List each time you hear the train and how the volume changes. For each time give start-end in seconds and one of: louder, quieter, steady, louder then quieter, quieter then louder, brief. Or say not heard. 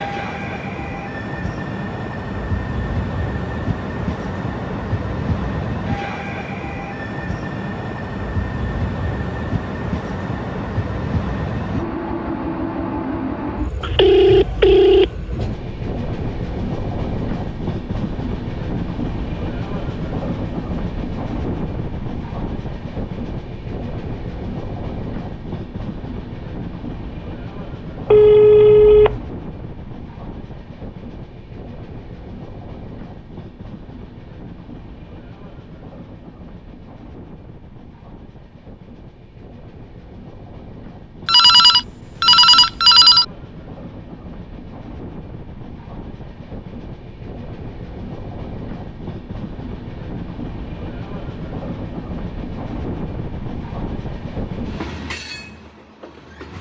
0.0-56.5 quieter then louder.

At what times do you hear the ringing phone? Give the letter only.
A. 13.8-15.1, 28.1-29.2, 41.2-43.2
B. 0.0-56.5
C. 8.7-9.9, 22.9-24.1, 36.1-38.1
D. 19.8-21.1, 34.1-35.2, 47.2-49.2
A.